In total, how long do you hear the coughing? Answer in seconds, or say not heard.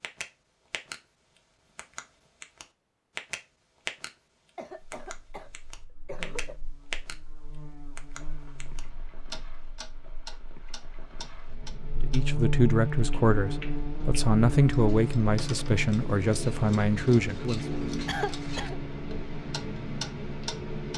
3 s.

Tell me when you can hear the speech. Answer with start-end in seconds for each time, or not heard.
11.9-17.6.